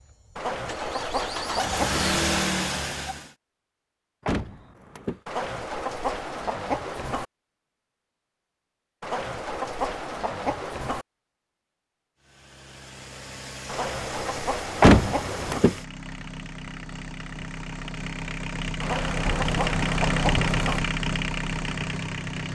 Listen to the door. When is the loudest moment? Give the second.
15 s.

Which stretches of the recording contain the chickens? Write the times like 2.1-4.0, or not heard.
0.3-2.0, 5.2-7.2, 9.0-11.1, 13.7-15.6, 18.8-20.8.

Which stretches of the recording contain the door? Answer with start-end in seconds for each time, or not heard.
4.2-5.2, 14.8-15.8.